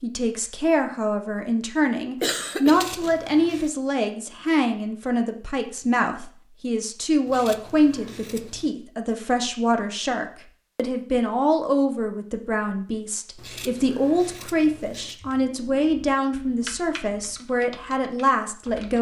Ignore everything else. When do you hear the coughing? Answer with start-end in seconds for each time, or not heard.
2.2-3.1.